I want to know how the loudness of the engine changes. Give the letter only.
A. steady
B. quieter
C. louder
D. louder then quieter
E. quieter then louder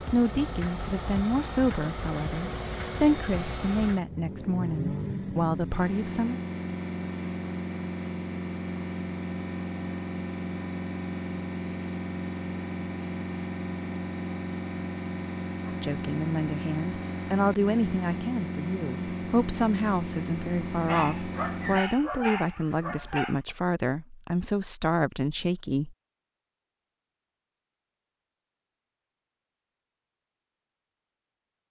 A.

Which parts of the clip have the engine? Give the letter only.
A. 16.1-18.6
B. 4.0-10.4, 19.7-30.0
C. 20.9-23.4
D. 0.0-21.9
D.